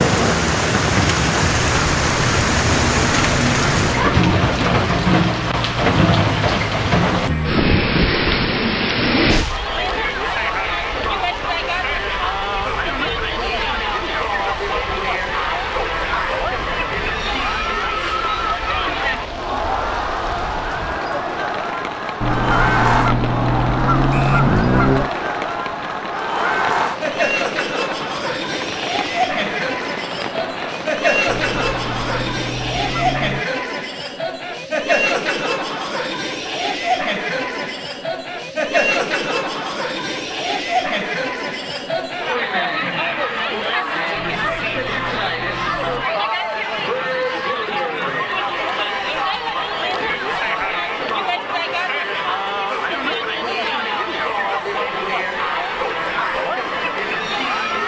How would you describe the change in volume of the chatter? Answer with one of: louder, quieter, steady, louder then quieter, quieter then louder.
steady.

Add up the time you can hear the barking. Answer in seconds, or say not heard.
not heard.